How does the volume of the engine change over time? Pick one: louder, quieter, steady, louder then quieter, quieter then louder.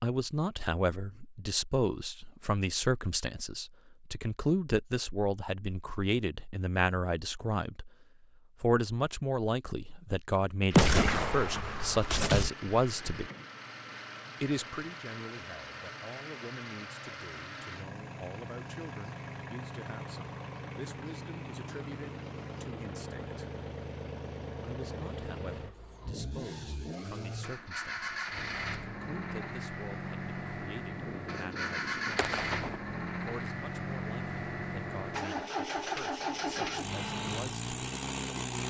louder.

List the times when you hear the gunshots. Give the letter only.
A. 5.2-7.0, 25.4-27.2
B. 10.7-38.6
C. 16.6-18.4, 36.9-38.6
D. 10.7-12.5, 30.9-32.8
D.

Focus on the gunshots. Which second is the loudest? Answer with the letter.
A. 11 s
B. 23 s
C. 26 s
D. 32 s
A.